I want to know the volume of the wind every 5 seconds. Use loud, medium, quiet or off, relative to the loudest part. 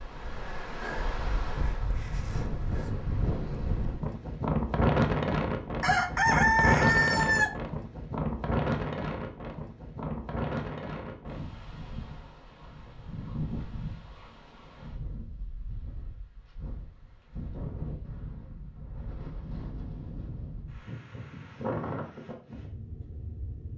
loud, loud, medium, quiet, medium.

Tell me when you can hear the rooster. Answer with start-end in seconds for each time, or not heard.
5.8-7.5.